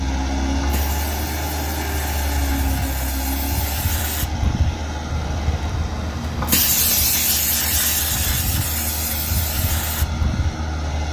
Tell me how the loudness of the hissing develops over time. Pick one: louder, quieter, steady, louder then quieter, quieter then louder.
louder then quieter.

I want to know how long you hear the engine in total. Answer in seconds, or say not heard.
11 s.